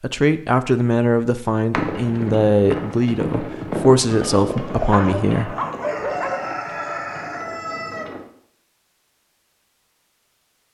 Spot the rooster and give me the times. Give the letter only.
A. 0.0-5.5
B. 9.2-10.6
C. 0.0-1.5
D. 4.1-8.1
D.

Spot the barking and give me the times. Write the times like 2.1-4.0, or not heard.
4.9-6.4.